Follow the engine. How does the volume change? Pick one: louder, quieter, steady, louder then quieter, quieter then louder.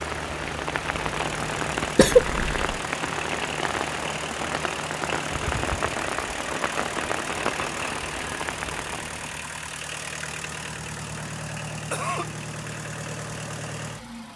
steady.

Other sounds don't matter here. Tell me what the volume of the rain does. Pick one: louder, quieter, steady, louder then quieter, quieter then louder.
steady.